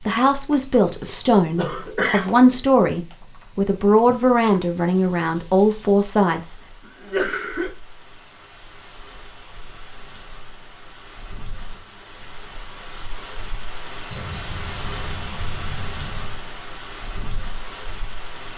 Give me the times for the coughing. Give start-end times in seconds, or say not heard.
1.6-2.5, 7.0-7.7, 14.1-16.4.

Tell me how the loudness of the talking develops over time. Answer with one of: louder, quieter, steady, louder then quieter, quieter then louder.
steady.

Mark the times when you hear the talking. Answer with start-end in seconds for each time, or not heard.
0.1-6.5.